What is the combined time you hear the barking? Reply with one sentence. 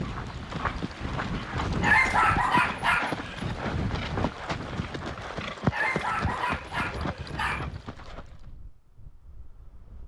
The barking can be heard for 4 seconds in total.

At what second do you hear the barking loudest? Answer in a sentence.
The loudest moment of the barking is at 2 seconds.